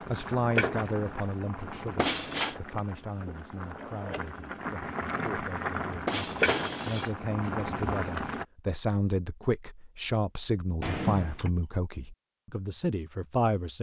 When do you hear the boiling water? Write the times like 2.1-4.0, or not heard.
0.0-8.4.